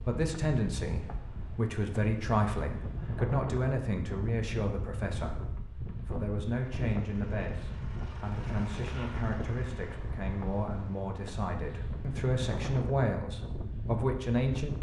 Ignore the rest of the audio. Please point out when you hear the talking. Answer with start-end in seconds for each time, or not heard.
0.0-14.7.